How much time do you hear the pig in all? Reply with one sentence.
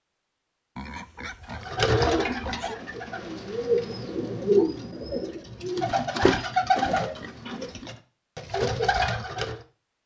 The pig can be heard for 3 seconds in total.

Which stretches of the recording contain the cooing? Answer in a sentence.
The cooing can be heard from 1.4 to 9.6 s.